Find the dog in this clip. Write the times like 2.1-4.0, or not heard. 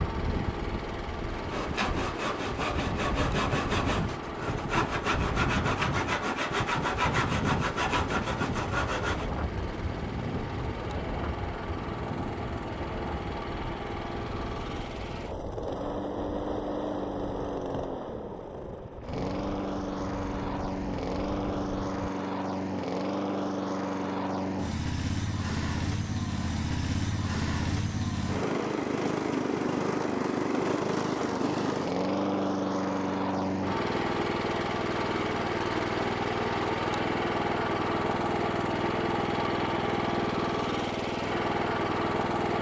not heard.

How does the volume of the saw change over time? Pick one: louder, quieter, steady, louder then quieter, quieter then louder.
steady.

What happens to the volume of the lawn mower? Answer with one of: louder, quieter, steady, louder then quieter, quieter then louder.
louder.